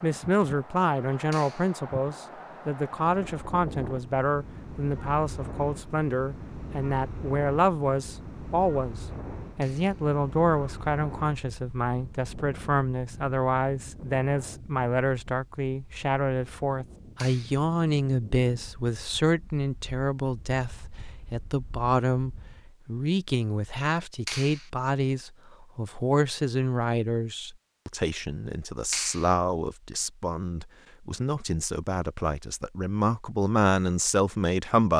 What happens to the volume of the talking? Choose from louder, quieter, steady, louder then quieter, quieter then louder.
steady.